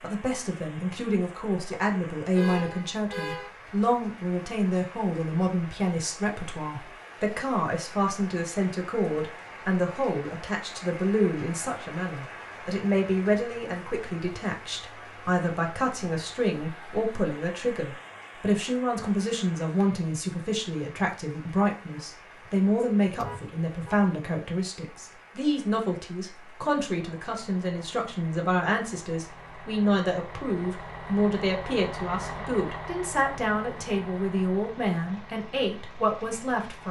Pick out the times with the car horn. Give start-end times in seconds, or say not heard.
2.4-3.5, 23.1-24.0.